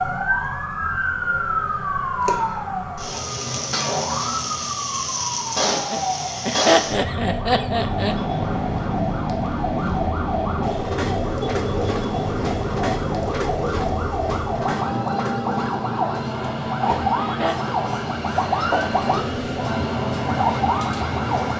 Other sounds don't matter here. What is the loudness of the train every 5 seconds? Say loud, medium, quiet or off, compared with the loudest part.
off, loud, loud, loud, loud.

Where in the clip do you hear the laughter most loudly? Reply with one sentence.
The volume of the laughter peaks at 7 seconds.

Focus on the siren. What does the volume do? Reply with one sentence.
The volume of the siren stays about the same.